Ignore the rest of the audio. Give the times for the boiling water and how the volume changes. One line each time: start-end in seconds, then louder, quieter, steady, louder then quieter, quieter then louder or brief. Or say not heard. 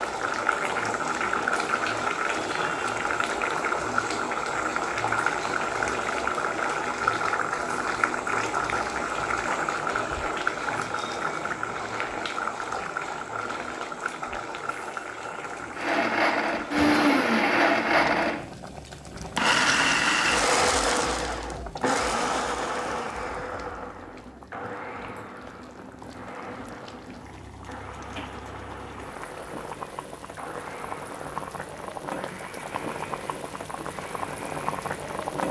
0.0-35.4 quieter then louder.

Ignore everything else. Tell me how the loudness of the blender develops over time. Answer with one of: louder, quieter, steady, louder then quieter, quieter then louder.
quieter.